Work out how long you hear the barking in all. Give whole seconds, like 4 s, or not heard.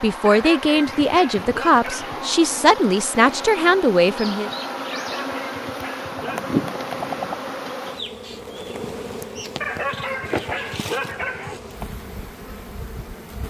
6 s.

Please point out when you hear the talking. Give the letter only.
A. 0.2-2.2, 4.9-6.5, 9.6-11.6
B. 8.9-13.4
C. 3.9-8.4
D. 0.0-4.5
D.